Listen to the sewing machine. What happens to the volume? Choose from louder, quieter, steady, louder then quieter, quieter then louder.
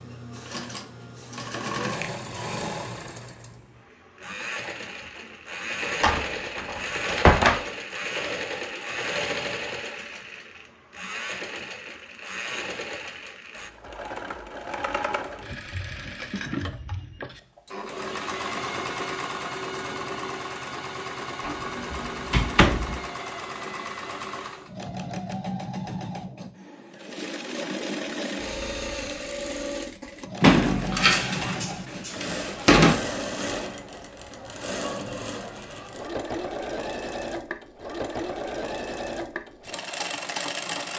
steady.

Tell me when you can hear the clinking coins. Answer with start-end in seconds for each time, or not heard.
not heard.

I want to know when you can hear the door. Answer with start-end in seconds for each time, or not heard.
6.0-7.6, 21.4-23.0, 30.4-33.0.